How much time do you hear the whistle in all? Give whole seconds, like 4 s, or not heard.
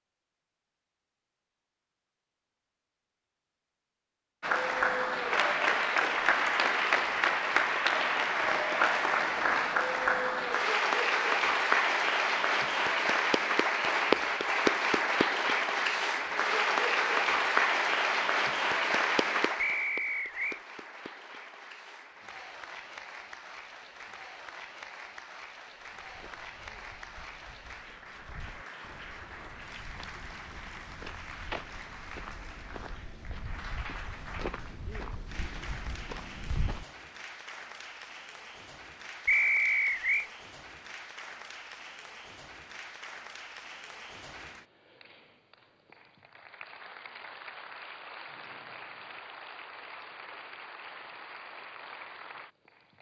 2 s.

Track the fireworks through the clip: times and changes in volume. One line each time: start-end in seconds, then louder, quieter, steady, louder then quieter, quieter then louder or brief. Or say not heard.
not heard.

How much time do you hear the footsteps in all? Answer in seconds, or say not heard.
11 s.